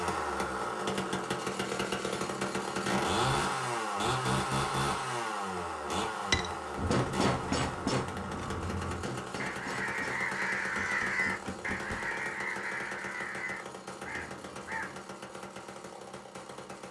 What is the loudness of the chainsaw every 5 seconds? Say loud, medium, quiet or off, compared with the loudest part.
loud, medium, medium, quiet.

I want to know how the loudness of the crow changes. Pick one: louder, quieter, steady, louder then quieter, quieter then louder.
louder then quieter.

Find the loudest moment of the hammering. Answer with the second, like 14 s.
7 s.